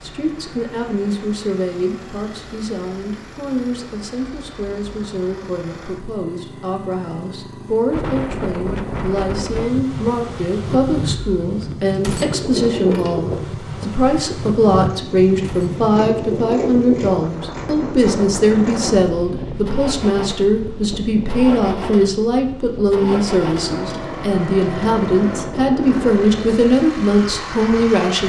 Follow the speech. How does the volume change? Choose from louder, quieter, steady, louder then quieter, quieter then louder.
louder.